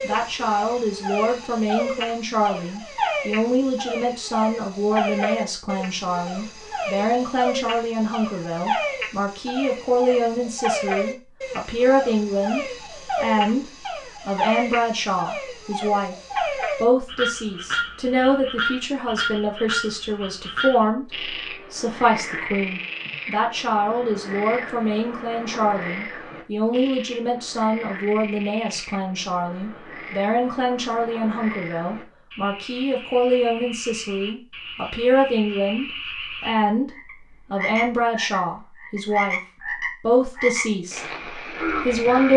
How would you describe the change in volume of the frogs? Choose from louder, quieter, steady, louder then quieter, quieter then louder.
quieter then louder.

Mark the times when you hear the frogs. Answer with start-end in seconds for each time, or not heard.
0.0-42.3.